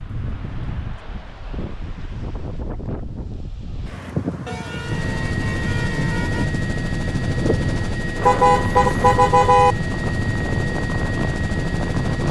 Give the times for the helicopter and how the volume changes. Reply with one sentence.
The helicopter can be heard from 4.8 to 12.2 s, at a steady volume.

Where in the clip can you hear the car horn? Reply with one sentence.
You can hear the car horn from 0.1 to 1.0 s, from 4.5 to 6.5 s and from 8.2 to 9.8 s.